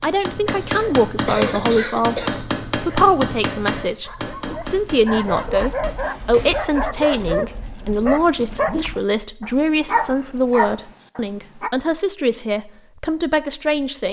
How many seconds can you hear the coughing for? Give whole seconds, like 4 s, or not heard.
2 s.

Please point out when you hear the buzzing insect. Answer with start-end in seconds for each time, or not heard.
not heard.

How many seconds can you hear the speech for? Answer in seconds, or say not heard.
14 s.